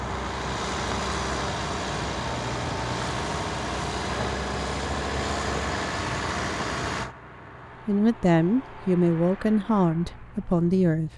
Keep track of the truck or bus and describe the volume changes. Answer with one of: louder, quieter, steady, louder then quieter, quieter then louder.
quieter.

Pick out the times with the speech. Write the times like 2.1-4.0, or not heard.
7.8-11.1.